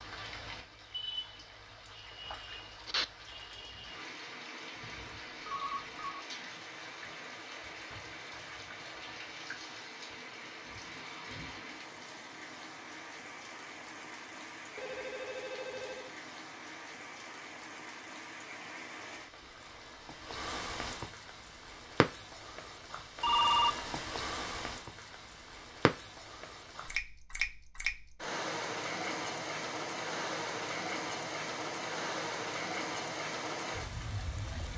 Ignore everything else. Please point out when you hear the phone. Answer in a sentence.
You can hear the phone from 5.0 to 6.2 s, from 14.8 to 16.1 s and from 23.2 to 23.9 s.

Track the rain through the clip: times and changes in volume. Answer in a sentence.
The rain can be heard from 0.0 to 34.7 s, getting louder.